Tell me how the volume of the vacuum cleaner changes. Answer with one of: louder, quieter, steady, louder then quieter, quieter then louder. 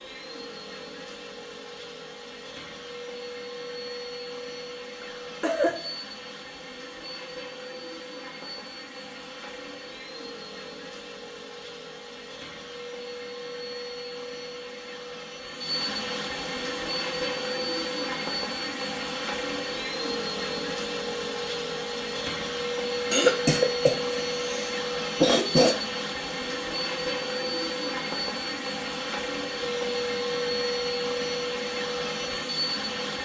louder.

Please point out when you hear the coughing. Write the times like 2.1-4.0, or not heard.
5.0-6.0, 23.1-25.8.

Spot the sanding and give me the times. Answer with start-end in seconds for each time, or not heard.
not heard.